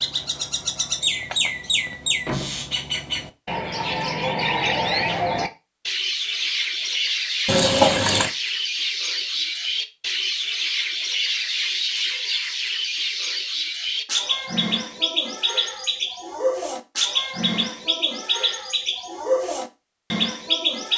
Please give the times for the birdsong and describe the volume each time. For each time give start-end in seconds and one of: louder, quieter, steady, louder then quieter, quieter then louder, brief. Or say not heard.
0.0-20.9 steady.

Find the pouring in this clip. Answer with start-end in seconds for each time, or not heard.
7.5-8.3.